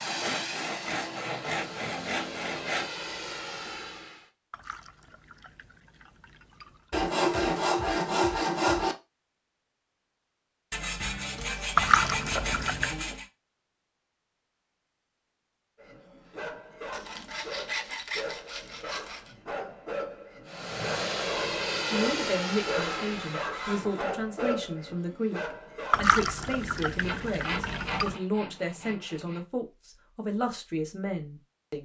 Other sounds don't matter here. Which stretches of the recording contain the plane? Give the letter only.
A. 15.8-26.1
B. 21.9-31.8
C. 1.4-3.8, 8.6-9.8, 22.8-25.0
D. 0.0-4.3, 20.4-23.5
D.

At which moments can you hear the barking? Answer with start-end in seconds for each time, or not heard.
15.8-26.1.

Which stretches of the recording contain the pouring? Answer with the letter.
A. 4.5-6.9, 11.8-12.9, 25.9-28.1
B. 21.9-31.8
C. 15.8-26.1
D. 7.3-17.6
A.